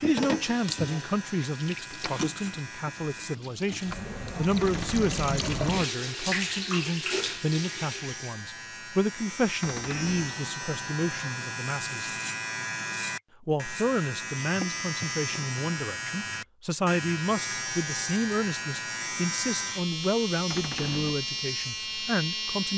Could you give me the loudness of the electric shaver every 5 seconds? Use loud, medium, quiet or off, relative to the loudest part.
medium, medium, loud, loud, loud.